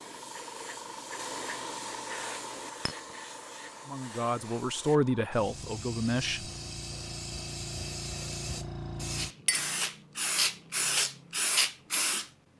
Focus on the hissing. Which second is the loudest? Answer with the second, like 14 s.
11 s.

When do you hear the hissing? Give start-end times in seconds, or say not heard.
0.0-12.3.